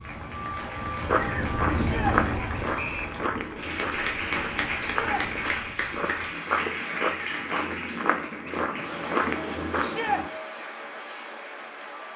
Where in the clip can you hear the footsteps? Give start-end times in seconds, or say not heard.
1.1-10.3.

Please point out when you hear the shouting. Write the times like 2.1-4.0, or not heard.
1.7-2.1, 4.8-5.2, 9.8-10.2.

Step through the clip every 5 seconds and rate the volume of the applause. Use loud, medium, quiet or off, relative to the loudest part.
loud, loud, medium.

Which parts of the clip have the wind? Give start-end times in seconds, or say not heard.
0.0-6.4.